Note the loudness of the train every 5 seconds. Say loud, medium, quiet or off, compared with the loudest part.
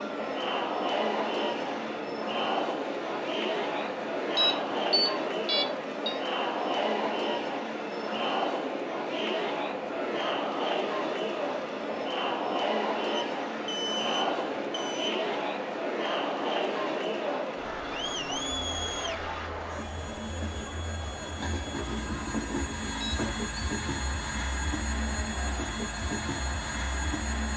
medium, medium, medium, medium, loud, loud.